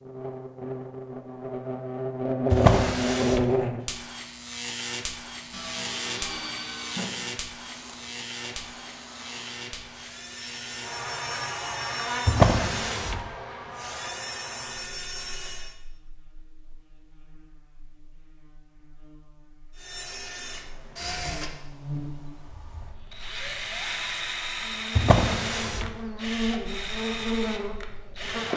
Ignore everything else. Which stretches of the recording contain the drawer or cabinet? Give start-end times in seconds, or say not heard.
2.5-3.5, 12.2-13.3, 24.9-25.9.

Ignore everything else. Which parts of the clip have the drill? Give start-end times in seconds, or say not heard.
5.3-15.8, 19.8-28.5.